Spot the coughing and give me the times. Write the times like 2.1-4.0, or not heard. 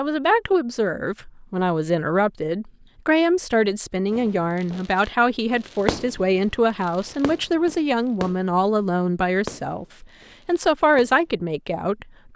not heard.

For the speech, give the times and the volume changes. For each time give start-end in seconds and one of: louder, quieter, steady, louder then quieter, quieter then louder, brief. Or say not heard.
0.0-12.3 steady.